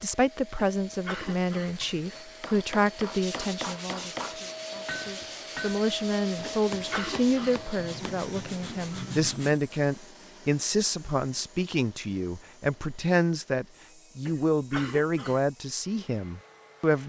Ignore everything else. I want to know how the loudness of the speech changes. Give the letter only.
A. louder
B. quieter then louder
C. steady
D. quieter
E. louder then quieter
C.